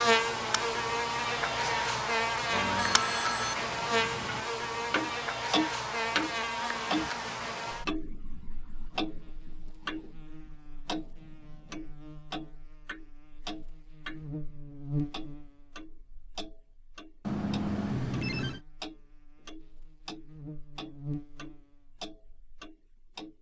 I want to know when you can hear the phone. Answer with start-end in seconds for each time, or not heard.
2.5-3.5, 17.2-18.6.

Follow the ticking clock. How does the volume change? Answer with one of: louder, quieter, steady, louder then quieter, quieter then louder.
louder then quieter.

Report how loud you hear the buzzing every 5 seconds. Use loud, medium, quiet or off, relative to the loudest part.
loud, medium, quiet, quiet, quiet.